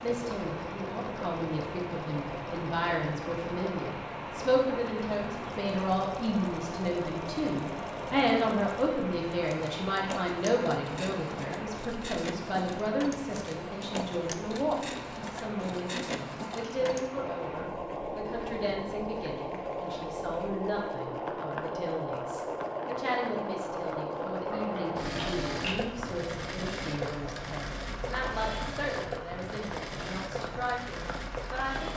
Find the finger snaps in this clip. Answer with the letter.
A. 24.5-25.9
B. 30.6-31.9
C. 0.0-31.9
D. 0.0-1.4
A.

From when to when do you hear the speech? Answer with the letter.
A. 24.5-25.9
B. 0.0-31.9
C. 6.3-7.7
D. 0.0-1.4
B.